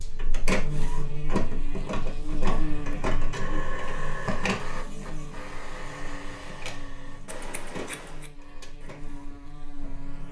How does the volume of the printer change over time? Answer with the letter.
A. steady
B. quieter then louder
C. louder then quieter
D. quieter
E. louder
D.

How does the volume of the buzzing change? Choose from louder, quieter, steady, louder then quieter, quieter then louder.
quieter.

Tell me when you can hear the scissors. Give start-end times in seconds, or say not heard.
7.2-8.3.